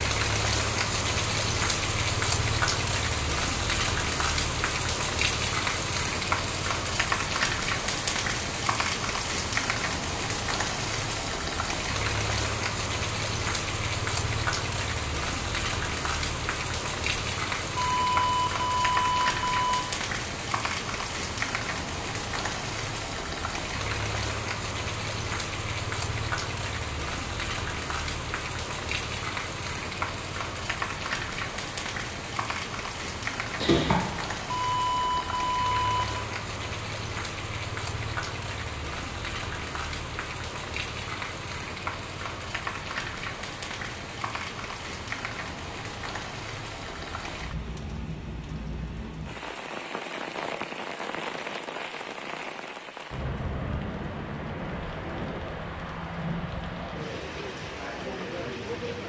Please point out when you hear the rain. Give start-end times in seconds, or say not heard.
0.0-59.0.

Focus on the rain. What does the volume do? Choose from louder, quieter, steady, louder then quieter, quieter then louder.
quieter.